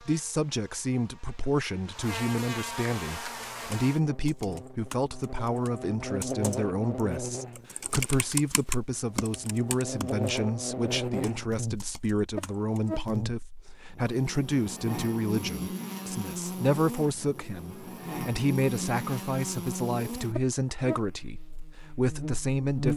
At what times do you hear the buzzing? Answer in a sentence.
You can hear the buzzing from 0.0 to 22.9 s.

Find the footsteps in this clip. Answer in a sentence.
The footsteps can't be heard in this clip.